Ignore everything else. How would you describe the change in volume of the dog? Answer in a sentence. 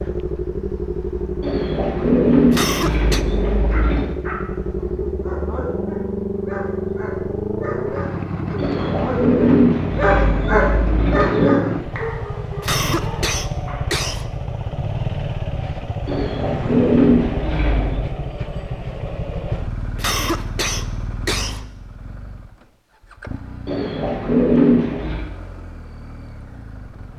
The volume of the dog goes up, then down.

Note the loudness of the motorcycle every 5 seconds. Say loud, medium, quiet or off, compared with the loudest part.
loud, loud, loud, loud, medium, quiet.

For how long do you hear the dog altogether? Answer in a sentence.
The dog can be heard for 10 seconds in total.